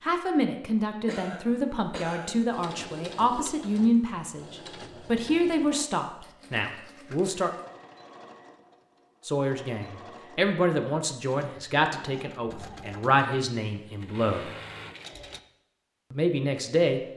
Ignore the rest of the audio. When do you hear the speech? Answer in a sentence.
The speech can be heard from 0.0 to 7.5 s, from 9.2 to 14.5 s and from 16.1 to 17.0 s.